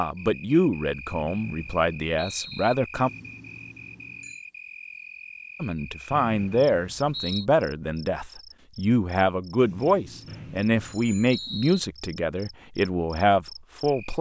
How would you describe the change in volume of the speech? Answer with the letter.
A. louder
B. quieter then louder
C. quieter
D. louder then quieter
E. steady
E.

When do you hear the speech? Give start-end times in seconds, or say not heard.
0.0-3.1, 5.6-14.1.